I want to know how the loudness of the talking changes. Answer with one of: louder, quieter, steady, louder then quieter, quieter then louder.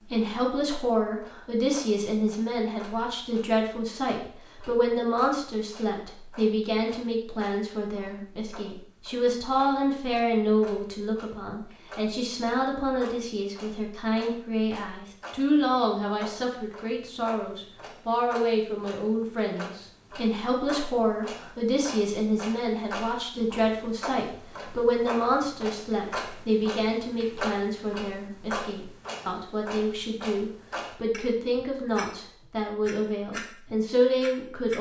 steady.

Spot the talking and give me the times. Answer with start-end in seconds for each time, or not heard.
0.1-34.7.